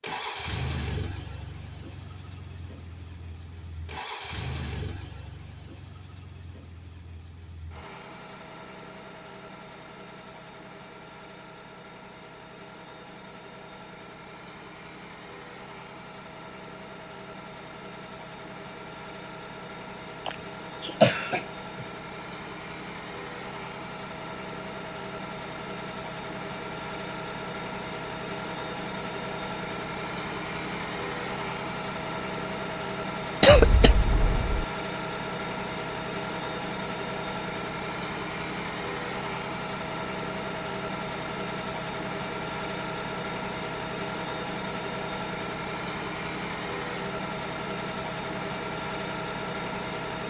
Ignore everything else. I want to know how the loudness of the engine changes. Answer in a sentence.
The loudness of the engine goes up.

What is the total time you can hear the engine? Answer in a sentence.
The engine can be heard for 50 seconds in total.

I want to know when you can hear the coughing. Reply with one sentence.
The coughing can be heard from 20.2 to 21.9 s and from 33.4 to 34.6 s.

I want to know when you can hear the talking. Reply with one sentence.
You can't hear the talking here.